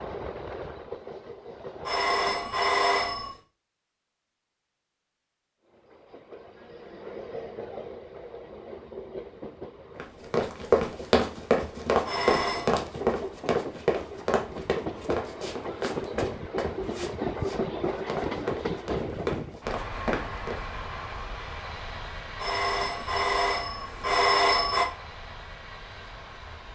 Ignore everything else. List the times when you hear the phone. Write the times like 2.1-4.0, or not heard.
1.9-3.3, 12.1-12.7, 22.4-24.9.